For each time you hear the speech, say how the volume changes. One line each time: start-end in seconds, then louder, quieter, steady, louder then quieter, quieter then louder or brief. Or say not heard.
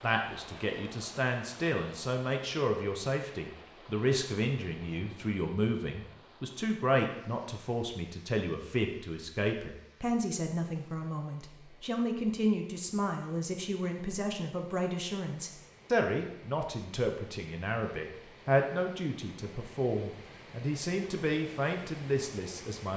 0.0-22.9 steady.